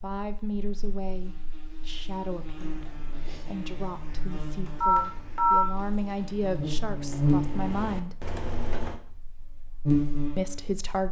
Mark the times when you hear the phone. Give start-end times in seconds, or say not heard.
4.8-5.7.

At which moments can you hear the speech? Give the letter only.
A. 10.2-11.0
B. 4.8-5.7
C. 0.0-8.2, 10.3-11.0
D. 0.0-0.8
C.